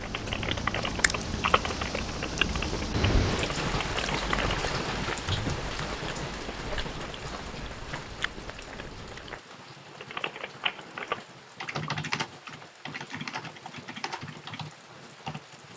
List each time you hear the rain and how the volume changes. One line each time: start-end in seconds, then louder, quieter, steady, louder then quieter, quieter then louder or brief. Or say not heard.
0.0-15.7 quieter.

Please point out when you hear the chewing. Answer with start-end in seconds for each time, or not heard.
0.0-9.4.